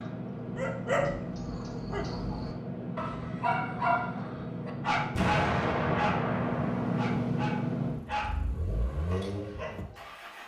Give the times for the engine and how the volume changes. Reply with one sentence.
The engine can be heard from 0.0 to 10.4 s, getting louder then quieter.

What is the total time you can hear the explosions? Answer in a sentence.
The explosions can be heard for 2 seconds in total.